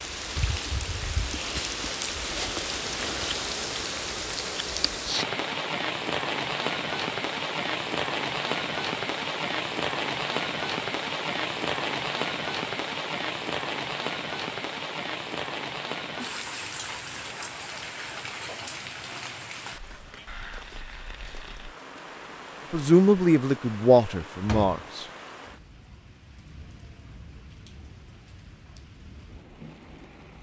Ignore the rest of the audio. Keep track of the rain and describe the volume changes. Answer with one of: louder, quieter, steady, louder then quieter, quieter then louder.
quieter.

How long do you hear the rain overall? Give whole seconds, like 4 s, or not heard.
30 s.